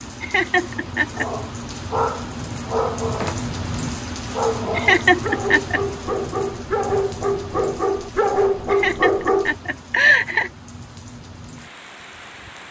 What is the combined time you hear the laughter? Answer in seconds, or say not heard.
4 s.